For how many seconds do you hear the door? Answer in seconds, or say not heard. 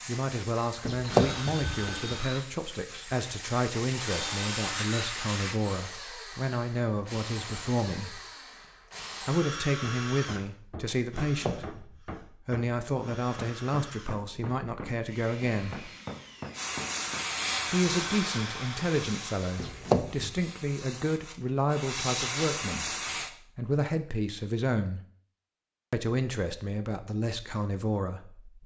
3 s.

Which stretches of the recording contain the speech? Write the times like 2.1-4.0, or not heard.
0.1-8.2, 9.2-15.9, 17.7-25.0, 25.9-28.6.